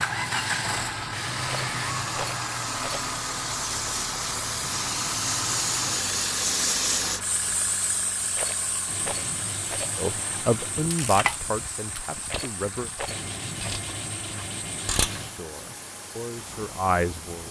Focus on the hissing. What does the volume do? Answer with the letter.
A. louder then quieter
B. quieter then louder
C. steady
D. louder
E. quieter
A.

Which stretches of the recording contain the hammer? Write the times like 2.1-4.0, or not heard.
not heard.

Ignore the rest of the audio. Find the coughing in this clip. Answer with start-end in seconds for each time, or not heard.
not heard.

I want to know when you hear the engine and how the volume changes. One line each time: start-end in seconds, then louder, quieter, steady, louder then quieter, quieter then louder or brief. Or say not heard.
0.0-17.4 quieter.